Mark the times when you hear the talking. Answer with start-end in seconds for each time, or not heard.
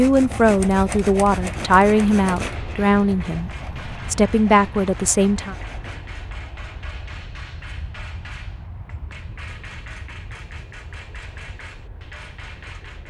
0.0-5.5.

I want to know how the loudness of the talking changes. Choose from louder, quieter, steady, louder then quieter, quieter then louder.
quieter then louder.